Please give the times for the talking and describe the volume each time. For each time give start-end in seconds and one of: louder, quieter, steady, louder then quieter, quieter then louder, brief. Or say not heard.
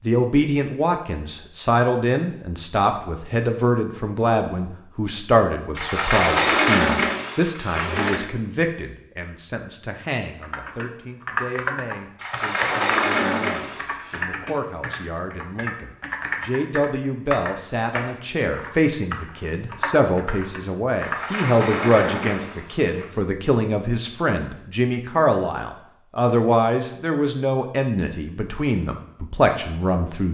0.0-30.2 quieter then louder.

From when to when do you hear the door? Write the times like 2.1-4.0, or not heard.
5.8-8.2, 12.2-14.2, 20.9-23.1.